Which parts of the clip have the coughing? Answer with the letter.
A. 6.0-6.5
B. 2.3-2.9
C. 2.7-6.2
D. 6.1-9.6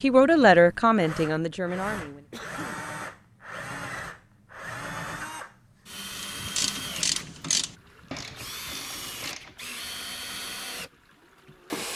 B.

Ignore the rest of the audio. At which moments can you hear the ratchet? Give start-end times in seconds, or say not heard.
6.1-9.6.